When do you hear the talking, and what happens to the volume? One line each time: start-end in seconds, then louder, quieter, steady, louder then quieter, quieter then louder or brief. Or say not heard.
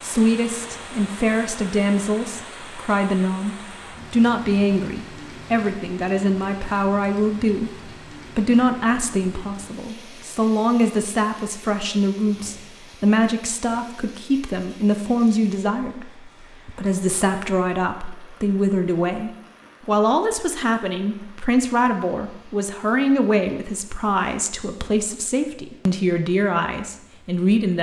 0.0-27.7 steady.